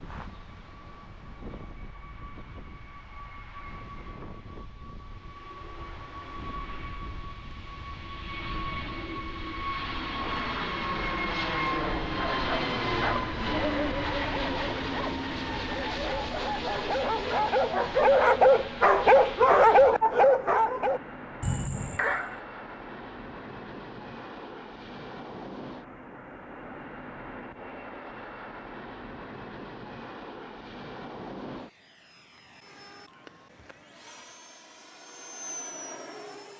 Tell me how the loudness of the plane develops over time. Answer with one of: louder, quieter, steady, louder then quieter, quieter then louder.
louder then quieter.